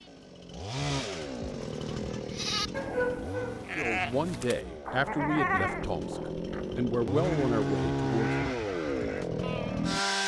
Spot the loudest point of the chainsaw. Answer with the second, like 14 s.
8 s.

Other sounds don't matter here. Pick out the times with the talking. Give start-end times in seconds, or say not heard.
3.8-8.3.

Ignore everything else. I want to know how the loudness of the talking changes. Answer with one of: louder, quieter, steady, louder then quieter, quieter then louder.
quieter then louder.